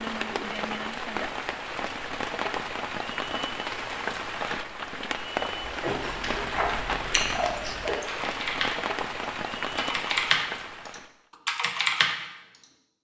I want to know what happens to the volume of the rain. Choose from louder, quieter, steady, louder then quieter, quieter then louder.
steady.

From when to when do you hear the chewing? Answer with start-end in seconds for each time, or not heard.
5.8-8.1.